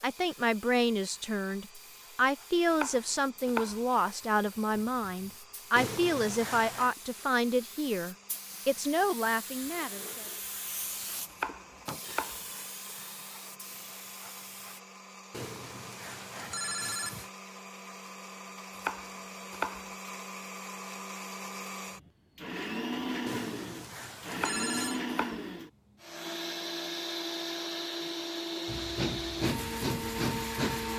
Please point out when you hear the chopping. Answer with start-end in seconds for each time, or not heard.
2.6-3.9, 11.3-12.4, 18.7-19.9, 24.3-25.4.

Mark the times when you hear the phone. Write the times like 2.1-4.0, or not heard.
5.8-7.0, 15.3-17.3, 23.2-25.0.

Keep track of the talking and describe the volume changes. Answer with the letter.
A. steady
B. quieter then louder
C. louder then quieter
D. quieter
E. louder
A.